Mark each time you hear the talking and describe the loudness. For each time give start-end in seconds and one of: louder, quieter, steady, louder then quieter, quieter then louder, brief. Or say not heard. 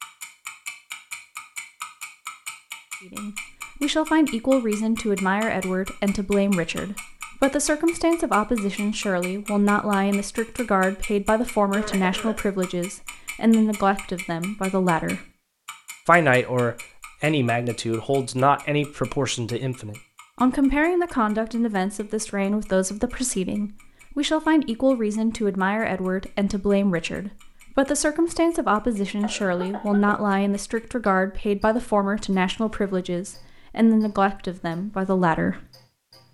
3.1-15.2 steady
16.1-35.6 steady.